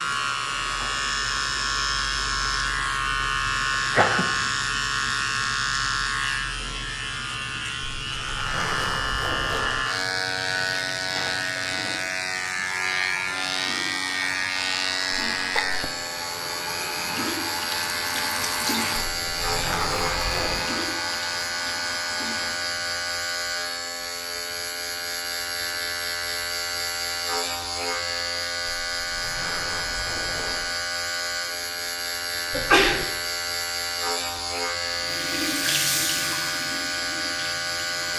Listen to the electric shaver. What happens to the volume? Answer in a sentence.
The loudness of the electric shaver stays about the same.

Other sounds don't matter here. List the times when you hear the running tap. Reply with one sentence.
You can hear the running tap from 0.0 to 23.2 s and from 34.8 to 38.1 s.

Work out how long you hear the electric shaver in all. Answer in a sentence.
You can hear the electric shaver for 38 seconds altogether.